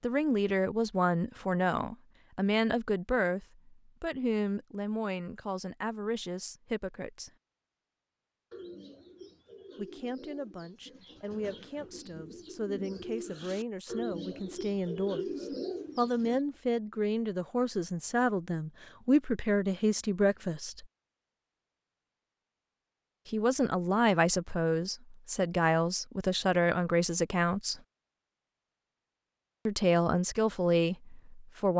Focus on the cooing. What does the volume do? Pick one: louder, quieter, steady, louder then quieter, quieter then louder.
louder.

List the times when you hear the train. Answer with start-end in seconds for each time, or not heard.
not heard.